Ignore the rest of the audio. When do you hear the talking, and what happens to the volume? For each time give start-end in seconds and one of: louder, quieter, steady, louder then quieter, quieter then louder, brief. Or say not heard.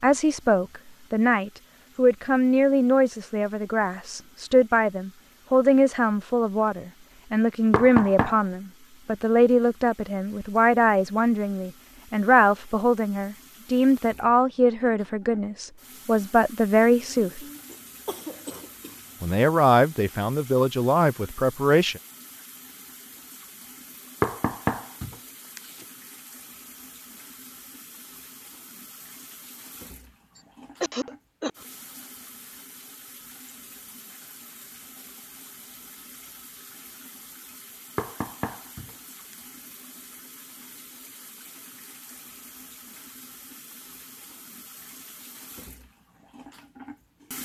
0.0-17.4 steady
19.2-22.0 brief.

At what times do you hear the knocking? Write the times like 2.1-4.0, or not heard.
7.7-8.4, 24.2-25.9, 38.0-39.4.